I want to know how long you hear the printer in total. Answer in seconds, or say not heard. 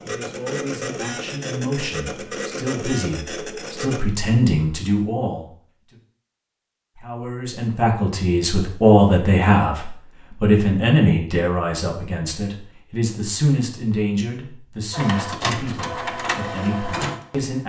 7 s.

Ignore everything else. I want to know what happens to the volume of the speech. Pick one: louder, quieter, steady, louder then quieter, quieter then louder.
louder then quieter.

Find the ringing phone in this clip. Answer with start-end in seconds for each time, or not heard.
not heard.